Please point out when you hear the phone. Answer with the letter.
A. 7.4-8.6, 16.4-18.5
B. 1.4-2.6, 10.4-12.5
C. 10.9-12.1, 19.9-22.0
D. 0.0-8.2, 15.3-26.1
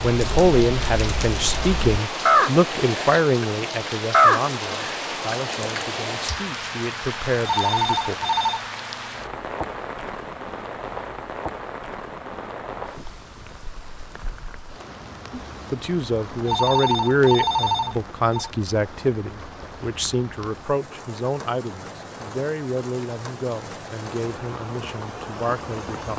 A.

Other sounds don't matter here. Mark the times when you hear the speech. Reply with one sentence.
The speech can be heard from 0.0 to 8.2 s and from 15.3 to 26.1 s.